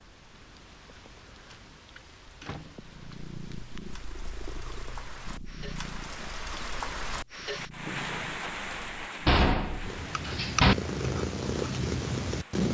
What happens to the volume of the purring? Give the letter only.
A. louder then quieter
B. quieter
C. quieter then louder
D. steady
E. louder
E.